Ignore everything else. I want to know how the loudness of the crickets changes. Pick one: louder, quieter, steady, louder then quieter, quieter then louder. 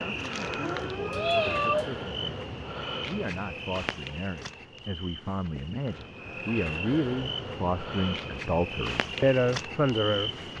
quieter then louder.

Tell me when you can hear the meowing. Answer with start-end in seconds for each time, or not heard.
0.6-1.9.